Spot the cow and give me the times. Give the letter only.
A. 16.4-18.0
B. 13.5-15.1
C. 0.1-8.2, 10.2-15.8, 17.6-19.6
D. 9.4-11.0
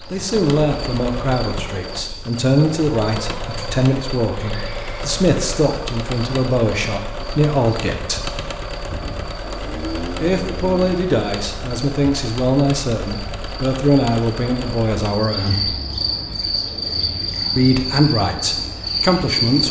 D.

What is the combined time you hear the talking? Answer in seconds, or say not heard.
16 s.